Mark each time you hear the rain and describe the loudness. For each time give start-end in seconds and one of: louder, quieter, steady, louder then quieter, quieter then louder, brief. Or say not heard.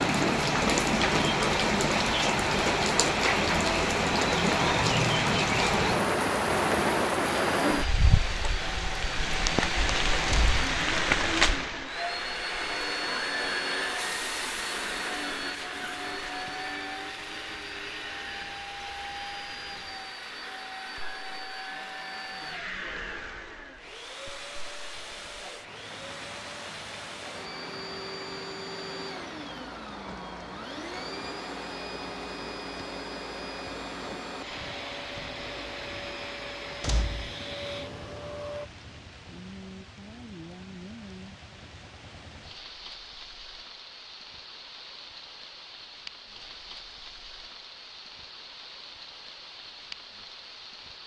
0.0-51.0 quieter.